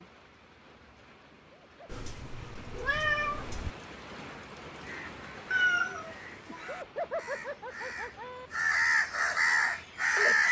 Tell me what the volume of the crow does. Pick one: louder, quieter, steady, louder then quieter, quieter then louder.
louder.